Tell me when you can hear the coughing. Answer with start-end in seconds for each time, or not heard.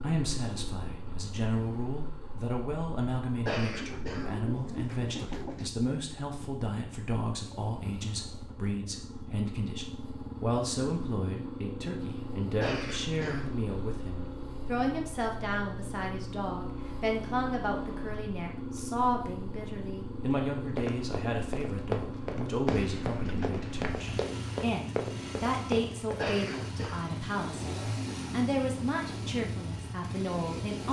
3.5-4.3, 12.6-13.5, 26.1-27.1.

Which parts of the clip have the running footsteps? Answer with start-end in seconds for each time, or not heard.
20.8-26.2.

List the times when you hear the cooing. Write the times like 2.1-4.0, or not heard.
3.6-5.7, 22.6-24.6.